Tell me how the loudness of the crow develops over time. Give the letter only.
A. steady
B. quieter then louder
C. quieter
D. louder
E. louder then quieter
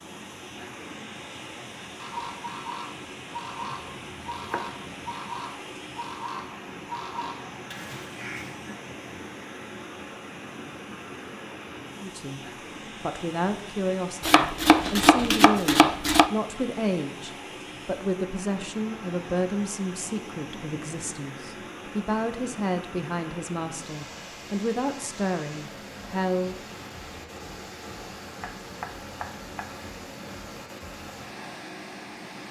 A.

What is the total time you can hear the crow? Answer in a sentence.
The crow can be heard for 7 seconds in total.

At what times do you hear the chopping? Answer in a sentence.
You can hear the chopping from 3.6 to 5.2 s, from 14.2 to 16.3 s and from 28.4 to 29.8 s.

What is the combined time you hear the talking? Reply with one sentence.
You can hear the talking for 14 seconds altogether.